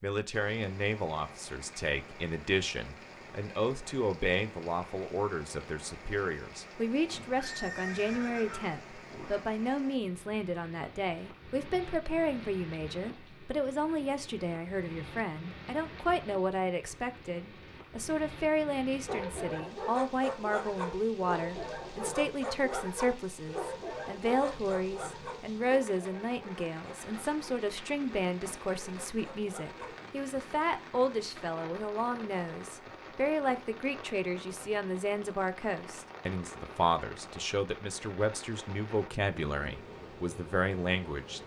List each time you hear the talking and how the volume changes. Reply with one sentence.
The talking can be heard from 0.0 to 41.4 s, at a steady volume.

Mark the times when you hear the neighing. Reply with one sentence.
The neighing can be heard from 7.1 to 9.4 s.